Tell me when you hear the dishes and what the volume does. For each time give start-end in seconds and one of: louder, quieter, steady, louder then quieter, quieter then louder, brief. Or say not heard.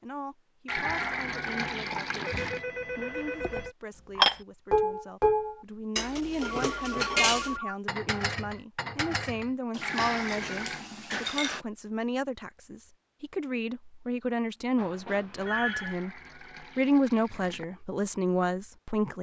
4.2-11.6 quieter.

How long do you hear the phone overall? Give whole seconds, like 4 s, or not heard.
4 s.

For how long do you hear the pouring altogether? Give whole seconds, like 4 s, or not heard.
5 s.